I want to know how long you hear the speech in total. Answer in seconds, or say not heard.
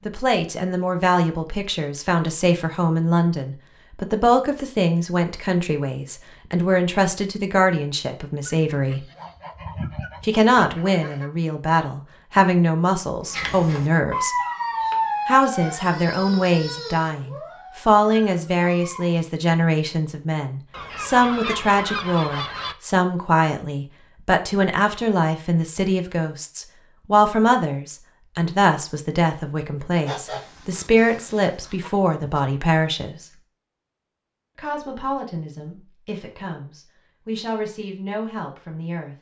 36 s.